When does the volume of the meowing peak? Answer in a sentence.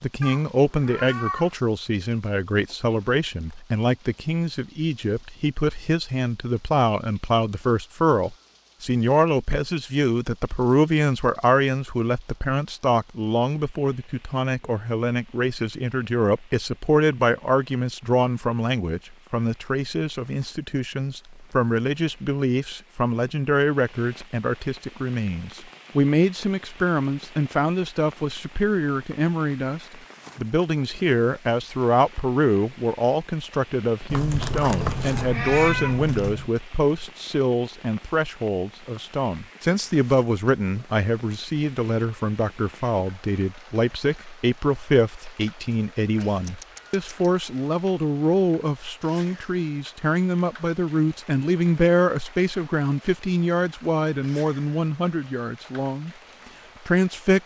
The loudest moment of the meowing is at 36 seconds.